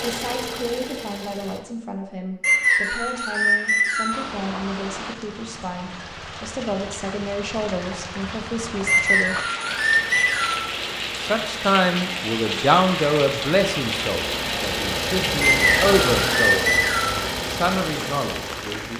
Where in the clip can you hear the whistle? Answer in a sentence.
The whistle can be heard from 2.4 to 4.2 s, from 8.8 to 10.7 s and from 15.4 to 17.2 s.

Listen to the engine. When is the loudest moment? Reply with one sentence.
The volume of the engine peaks at 16 seconds.